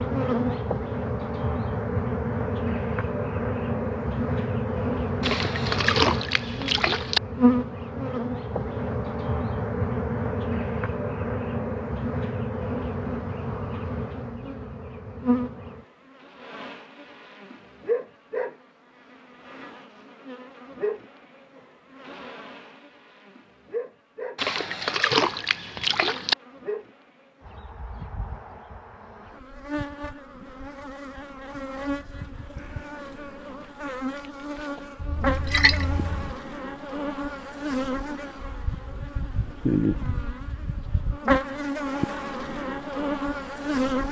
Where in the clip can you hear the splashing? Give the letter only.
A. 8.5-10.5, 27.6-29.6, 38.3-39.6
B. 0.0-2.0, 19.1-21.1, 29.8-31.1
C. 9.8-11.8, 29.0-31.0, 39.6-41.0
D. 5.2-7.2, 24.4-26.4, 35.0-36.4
D.